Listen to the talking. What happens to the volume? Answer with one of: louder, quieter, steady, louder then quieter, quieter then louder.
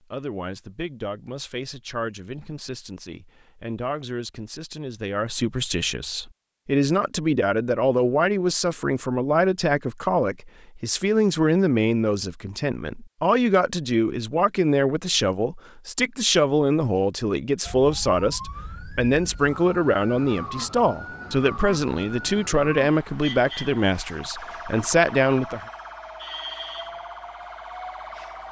louder.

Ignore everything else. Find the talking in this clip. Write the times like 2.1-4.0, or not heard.
0.1-25.6.